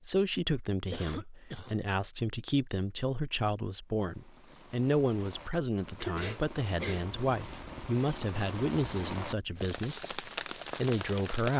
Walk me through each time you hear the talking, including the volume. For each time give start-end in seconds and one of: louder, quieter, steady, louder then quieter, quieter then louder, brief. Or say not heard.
0.1-11.5 steady.